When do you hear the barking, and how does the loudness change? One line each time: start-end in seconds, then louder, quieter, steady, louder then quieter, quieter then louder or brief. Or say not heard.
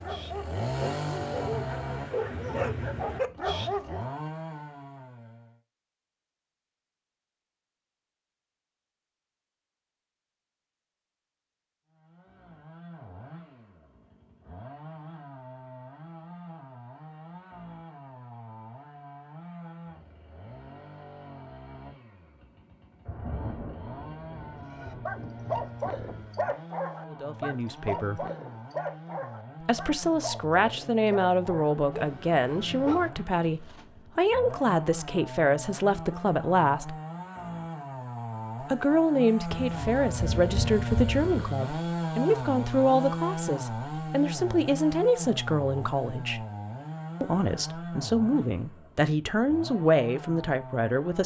0.0-4.0 louder
24.6-33.9 quieter.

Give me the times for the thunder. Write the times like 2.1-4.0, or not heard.
1.2-3.2, 23.1-26.5, 39.5-41.5.